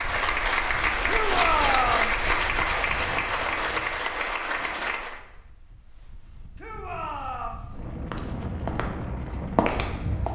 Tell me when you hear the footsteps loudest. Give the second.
10 s.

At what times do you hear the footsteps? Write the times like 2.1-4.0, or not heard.
8.1-10.2.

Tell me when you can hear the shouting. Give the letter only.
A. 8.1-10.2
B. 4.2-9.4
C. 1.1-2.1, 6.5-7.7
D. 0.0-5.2
C.